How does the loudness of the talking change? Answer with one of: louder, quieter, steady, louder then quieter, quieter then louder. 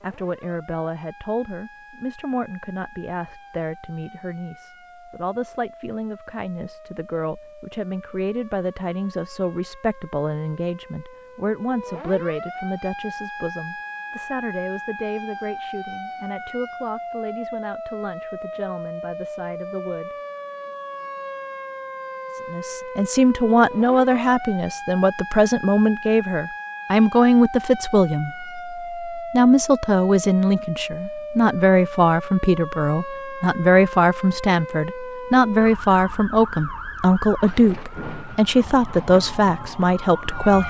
louder.